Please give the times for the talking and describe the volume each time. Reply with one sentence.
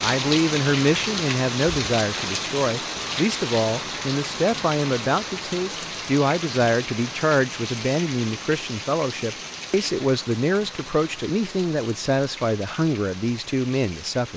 You can hear the talking from 0.0 to 14.3 s, at a steady volume.